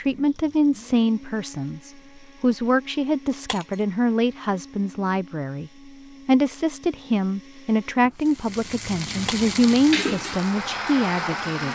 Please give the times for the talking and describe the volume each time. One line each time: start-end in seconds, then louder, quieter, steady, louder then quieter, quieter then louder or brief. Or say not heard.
0.0-11.6 steady.